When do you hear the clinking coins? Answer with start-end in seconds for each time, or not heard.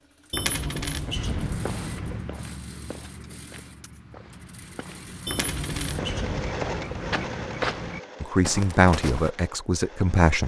0.3-2.3, 5.2-7.3.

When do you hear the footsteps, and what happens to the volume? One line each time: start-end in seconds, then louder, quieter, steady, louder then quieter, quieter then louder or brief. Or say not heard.
1.1-9.3 quieter then louder.